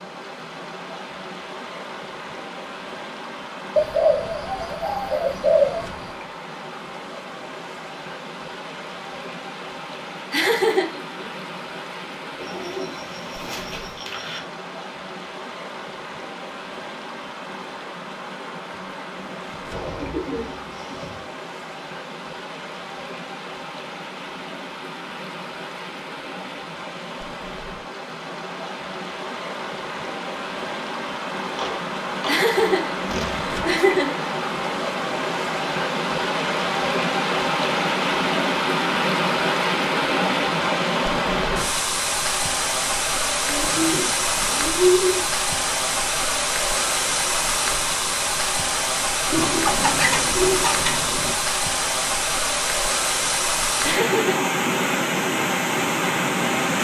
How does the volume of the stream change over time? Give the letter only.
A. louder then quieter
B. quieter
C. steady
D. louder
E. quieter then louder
D.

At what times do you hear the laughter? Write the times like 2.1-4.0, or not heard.
10.3-11.2, 32.2-34.2, 53.8-54.5.